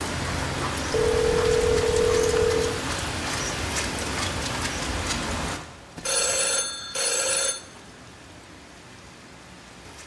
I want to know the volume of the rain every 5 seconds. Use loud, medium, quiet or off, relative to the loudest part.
loud, medium.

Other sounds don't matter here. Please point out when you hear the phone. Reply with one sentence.
The phone can be heard from 0.9 to 2.8 s and from 6.0 to 7.6 s.